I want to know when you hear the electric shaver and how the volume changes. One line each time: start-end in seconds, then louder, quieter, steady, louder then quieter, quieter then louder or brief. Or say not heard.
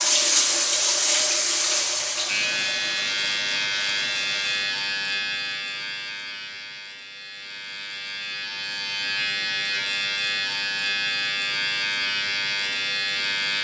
2.2-13.5 quieter then louder.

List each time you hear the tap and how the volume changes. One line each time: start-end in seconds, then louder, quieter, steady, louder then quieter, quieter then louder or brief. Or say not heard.
0.0-4.6 quieter.